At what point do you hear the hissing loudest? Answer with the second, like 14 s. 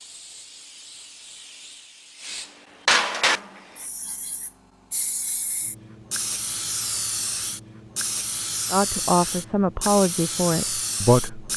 3 s.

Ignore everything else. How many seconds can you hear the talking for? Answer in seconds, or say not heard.
3 s.